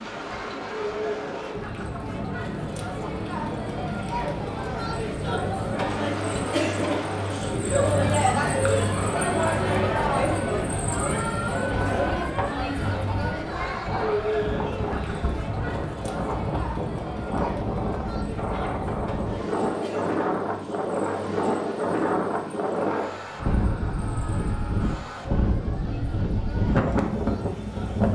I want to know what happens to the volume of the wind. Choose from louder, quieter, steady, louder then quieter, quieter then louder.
louder.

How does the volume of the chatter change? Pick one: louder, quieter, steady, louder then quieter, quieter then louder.
louder then quieter.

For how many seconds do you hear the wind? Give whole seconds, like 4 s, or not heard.
28 s.